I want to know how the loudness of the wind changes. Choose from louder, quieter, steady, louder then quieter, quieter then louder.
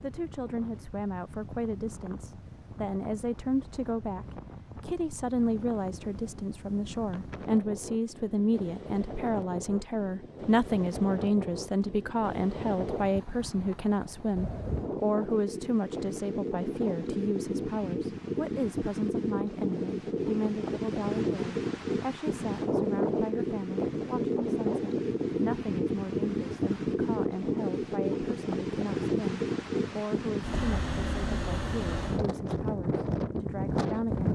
louder.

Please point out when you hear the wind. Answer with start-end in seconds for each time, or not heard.
0.0-34.2.